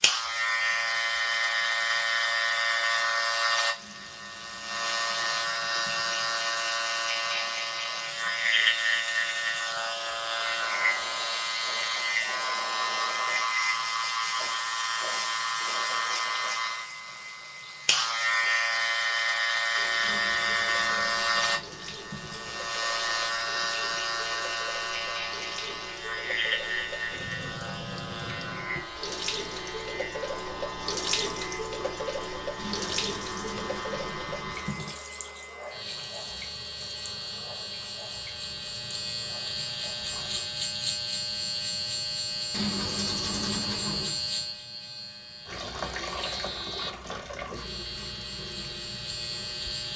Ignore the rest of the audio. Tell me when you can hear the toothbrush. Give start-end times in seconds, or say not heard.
3.8-6.5, 20.0-22.8, 32.5-35.0, 42.5-44.2.